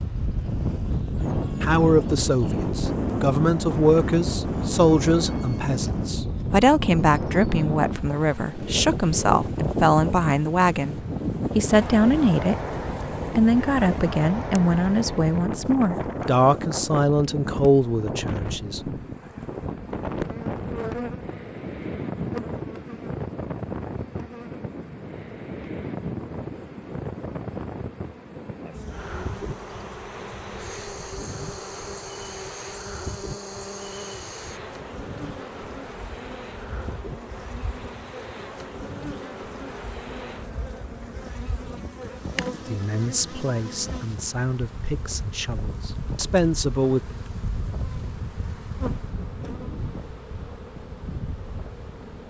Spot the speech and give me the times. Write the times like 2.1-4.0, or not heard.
1.6-12.6, 13.3-18.8, 42.6-47.0.